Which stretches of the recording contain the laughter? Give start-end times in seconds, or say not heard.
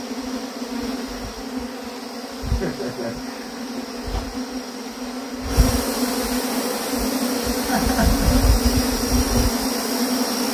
2.6-3.6, 7.6-8.5.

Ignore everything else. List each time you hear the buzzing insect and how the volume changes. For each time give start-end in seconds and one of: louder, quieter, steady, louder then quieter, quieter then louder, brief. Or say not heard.
0.0-10.4 louder.